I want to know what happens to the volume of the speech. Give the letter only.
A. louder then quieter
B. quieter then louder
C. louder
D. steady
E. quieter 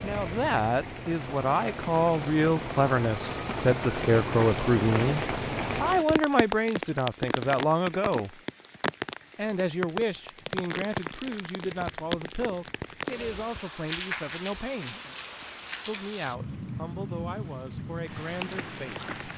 E.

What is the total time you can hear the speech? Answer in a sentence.
The speech can be heard for 17 seconds in total.